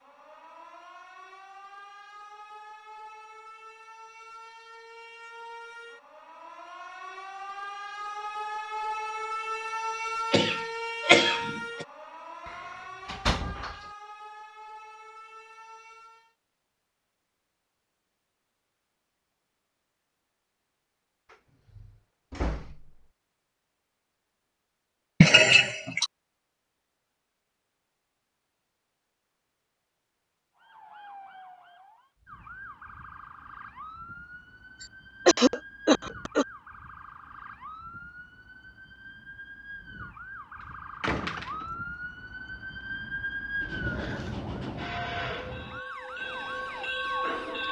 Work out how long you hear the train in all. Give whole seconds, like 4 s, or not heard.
4 s.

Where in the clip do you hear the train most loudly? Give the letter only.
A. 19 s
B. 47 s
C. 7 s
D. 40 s
B.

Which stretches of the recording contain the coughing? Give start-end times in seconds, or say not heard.
10.3-11.8, 25.2-26.1, 34.8-36.5.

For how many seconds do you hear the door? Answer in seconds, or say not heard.
4 s.